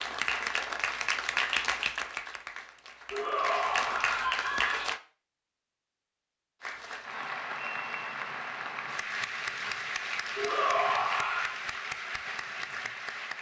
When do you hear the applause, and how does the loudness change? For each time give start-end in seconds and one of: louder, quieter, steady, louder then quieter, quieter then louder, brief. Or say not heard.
0.0-5.0 quieter then louder
6.6-13.3 steady.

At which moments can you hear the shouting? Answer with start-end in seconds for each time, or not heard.
3.1-4.9, 10.3-11.6.